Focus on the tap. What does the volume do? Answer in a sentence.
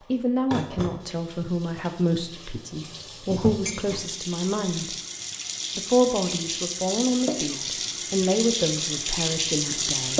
The volume of the tap goes up.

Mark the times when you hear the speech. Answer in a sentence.
The speech can be heard from 0.1 to 5.0 s and from 5.8 to 10.1 s.